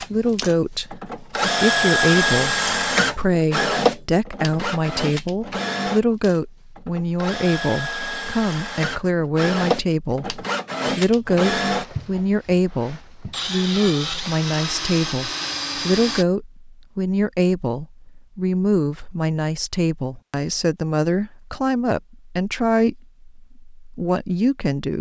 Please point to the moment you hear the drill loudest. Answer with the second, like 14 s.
2 s.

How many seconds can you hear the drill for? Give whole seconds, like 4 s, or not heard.
16 s.